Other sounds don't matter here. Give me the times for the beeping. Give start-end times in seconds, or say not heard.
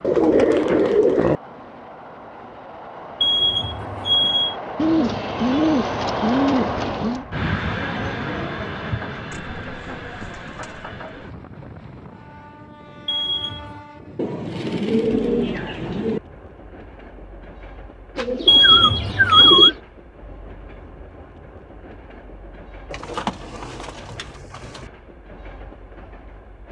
3.2-4.5, 13.1-13.8, 18.4-19.7.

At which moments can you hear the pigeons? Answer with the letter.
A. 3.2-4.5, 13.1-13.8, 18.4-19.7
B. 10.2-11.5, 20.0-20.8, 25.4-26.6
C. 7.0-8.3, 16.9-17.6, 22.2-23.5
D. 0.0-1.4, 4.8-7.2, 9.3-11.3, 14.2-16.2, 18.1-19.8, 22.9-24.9
D.